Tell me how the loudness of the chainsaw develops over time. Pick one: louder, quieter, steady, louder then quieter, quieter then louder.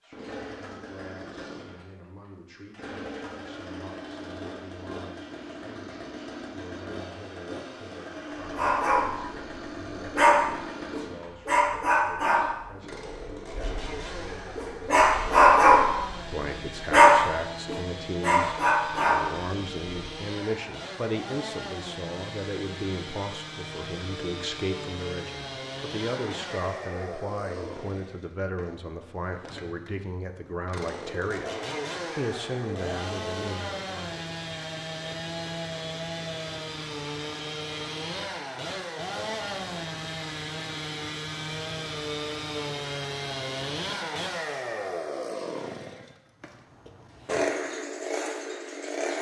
louder.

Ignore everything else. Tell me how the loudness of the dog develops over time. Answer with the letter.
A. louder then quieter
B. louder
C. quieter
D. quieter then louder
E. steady
D.